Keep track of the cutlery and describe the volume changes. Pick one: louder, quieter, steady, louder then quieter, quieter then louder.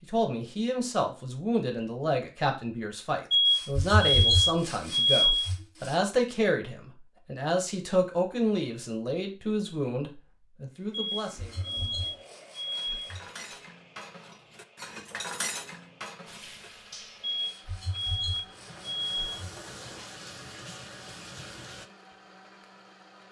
louder then quieter.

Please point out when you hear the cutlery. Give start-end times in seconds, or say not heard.
11.2-17.3.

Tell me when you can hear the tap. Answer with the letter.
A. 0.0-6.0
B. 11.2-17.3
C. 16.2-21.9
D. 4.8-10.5
C.